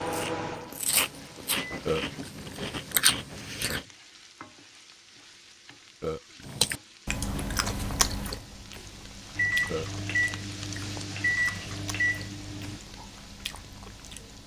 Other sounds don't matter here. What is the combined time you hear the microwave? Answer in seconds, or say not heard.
5 s.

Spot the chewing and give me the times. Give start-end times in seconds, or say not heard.
0.0-3.9, 6.5-14.4.